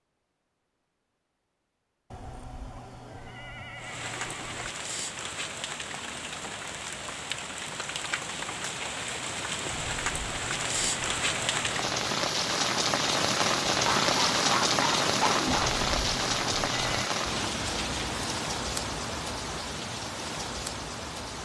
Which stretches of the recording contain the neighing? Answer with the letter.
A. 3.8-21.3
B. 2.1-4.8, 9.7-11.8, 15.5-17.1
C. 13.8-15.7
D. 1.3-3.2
B.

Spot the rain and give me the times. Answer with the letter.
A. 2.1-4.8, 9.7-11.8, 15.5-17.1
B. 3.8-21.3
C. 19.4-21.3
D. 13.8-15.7
B.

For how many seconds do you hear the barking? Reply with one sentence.
You can hear the barking for 2 seconds altogether.